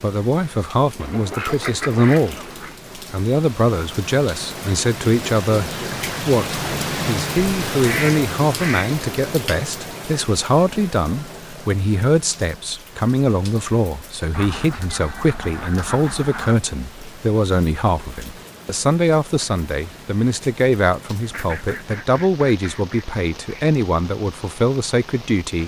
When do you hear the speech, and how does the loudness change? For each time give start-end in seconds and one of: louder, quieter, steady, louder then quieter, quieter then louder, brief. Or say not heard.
0.0-2.4 brief
3.0-25.6 steady.